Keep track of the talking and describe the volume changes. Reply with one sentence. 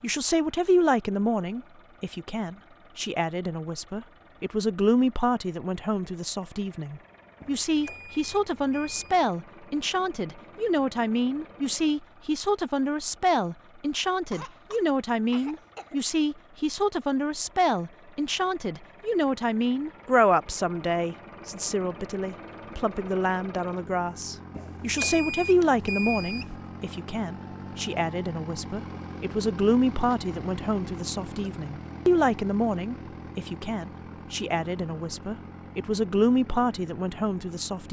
The loudness of the talking stays about the same.